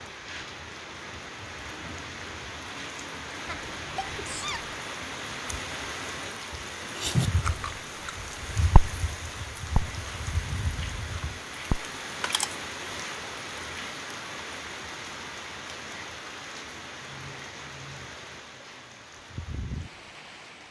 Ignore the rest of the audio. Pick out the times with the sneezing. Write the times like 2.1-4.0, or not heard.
3.5-4.8.